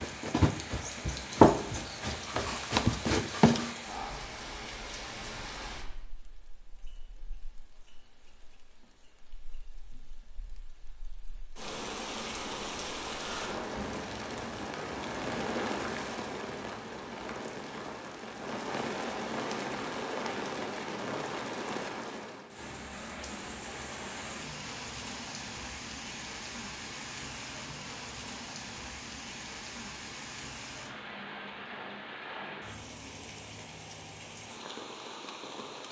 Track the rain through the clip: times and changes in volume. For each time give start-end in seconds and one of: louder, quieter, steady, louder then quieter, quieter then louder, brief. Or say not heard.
0.0-35.8 louder then quieter.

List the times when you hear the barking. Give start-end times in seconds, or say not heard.
not heard.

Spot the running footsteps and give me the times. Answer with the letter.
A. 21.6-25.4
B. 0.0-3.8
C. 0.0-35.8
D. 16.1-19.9
B.